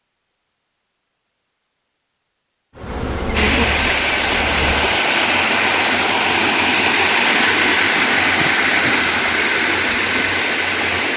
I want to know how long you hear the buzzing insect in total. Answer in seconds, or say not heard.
2 s.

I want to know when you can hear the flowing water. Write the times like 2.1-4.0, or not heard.
3.3-11.1.